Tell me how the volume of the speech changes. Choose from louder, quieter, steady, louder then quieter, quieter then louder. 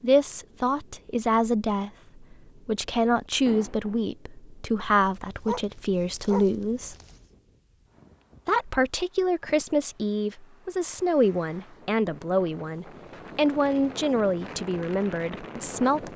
steady.